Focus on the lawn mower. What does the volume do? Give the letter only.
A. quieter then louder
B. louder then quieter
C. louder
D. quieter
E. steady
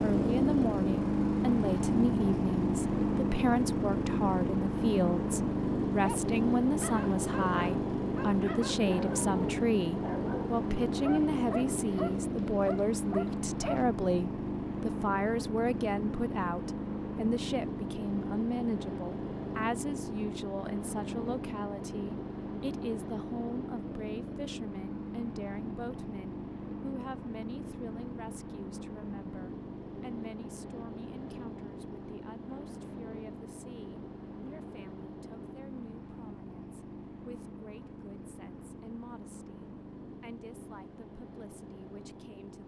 D.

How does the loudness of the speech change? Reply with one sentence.
The volume of the speech goes down.